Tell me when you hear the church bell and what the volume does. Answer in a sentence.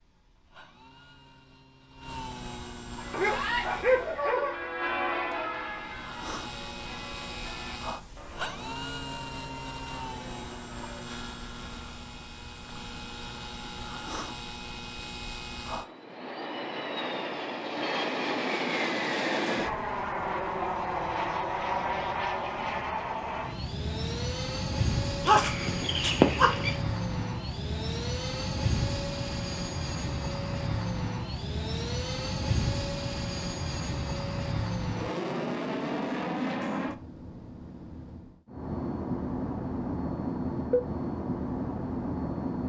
You can hear the church bell from 3.0 to 11.1 s, getting louder then quieter.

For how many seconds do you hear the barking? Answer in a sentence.
The barking can be heard for 3 seconds in total.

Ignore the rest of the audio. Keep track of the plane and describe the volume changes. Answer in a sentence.
The volume of the plane goes up.